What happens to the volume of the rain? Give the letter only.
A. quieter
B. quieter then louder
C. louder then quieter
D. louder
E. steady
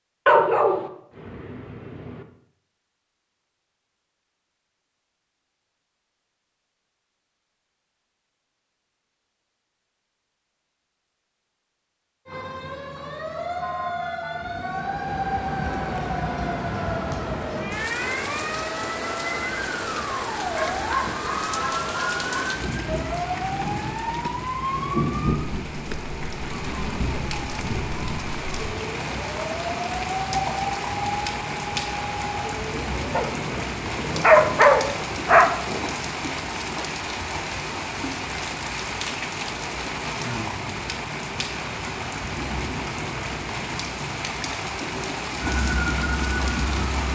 E.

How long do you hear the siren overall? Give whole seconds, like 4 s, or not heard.
23 s.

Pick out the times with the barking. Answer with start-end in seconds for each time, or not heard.
0.2-2.2, 20.6-22.6, 33.1-35.9.